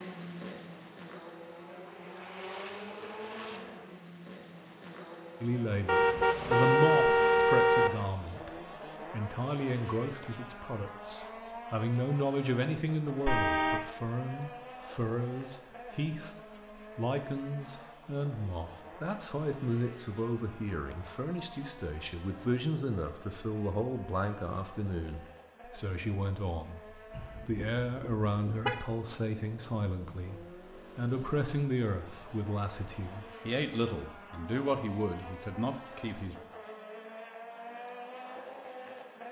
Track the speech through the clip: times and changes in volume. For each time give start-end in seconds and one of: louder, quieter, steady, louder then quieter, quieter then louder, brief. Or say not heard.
5.4-36.4 steady.